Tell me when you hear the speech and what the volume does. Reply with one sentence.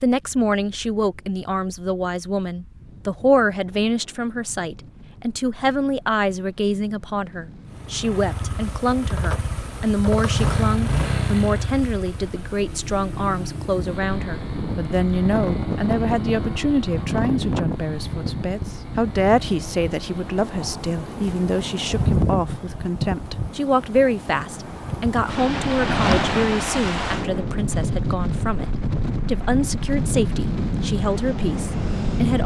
You can hear the speech from 0.0 to 32.4 s, at a steady volume.